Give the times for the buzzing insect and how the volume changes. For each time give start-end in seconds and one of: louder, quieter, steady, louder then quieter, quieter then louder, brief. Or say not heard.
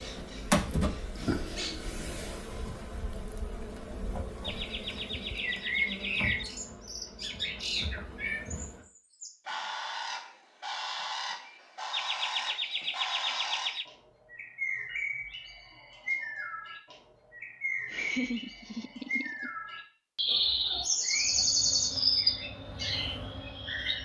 0.0-8.8 quieter
21.1-23.9 brief.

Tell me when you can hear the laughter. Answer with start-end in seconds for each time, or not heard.
4.4-6.5, 11.9-13.8, 17.9-19.5.